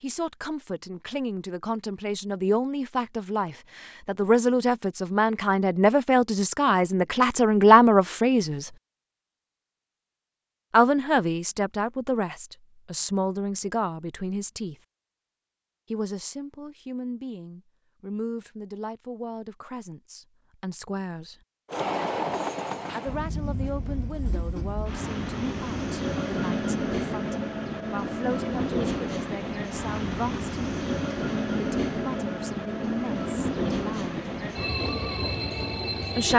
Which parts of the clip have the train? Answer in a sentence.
You can hear the train from 21.6 to 36.3 s.